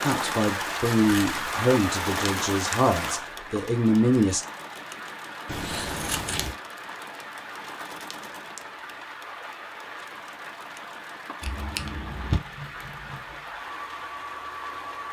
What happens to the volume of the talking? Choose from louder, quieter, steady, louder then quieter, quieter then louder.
quieter then louder.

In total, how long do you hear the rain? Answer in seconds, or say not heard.
15 s.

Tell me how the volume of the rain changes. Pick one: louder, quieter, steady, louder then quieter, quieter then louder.
quieter.